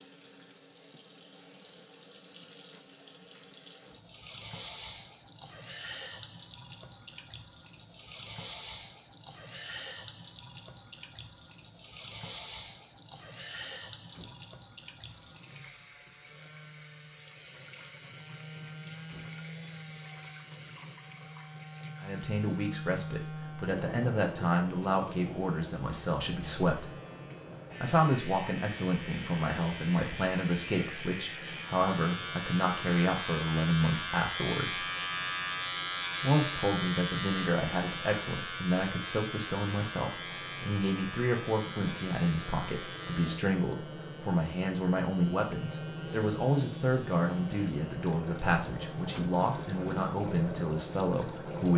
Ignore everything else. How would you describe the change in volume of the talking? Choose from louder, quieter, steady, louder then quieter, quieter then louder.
steady.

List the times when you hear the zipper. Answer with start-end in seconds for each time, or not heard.
not heard.